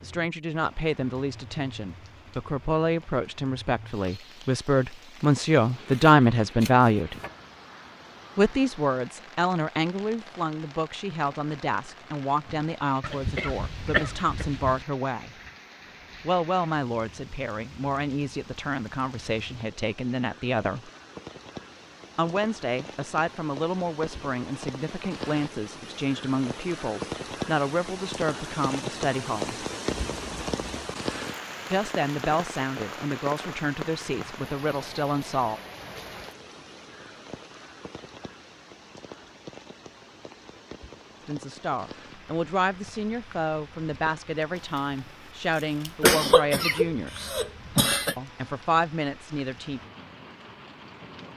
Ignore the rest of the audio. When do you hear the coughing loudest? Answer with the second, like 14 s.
46 s.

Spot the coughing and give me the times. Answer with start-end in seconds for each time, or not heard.
13.0-14.8, 46.0-48.1.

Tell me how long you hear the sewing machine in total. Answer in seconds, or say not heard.
not heard.